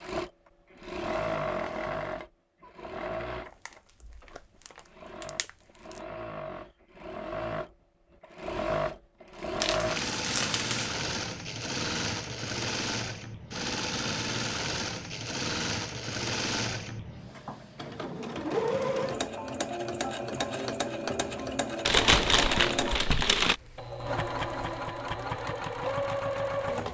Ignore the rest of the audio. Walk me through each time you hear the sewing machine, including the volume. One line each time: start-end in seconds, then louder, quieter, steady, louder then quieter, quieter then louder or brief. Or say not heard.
0.0-26.8 steady.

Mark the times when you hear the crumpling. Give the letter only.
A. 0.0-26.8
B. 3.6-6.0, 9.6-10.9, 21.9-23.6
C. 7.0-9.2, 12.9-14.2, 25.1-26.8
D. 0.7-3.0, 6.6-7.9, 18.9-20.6
B.